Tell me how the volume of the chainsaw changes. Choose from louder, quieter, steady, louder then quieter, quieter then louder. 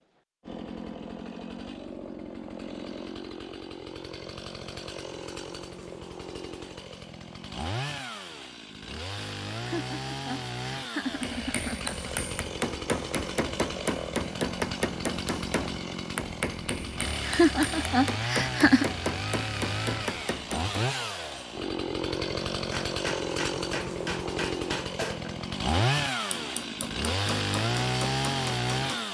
louder.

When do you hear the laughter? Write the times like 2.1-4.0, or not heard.
9.6-12.2, 17.2-18.9.